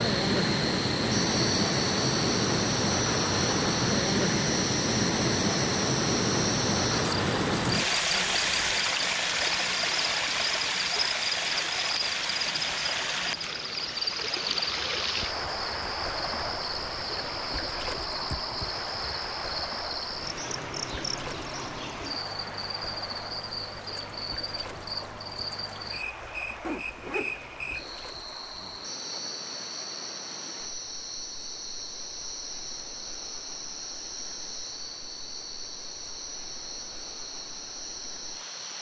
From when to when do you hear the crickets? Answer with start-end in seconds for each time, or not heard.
0.0-38.7.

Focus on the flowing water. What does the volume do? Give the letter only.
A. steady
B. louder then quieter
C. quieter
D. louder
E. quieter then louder
C.